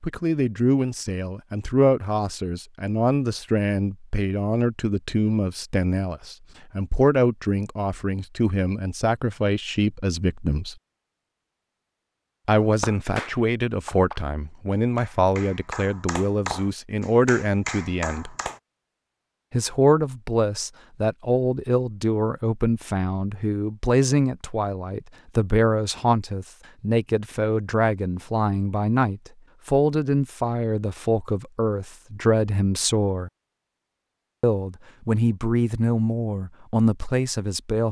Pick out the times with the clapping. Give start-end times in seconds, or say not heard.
12.6-18.6.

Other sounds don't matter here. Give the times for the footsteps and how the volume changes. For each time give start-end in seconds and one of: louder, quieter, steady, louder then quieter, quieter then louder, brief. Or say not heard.
not heard.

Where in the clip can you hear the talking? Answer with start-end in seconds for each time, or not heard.
0.0-10.8, 12.4-18.4, 19.5-33.3, 34.4-37.8.